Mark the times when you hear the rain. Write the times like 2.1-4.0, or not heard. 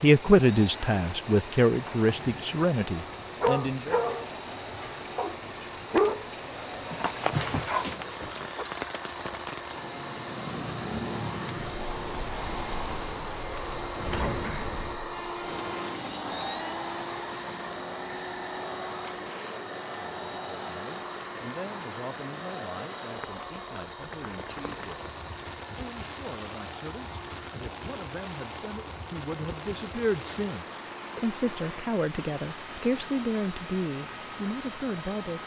0.0-35.4.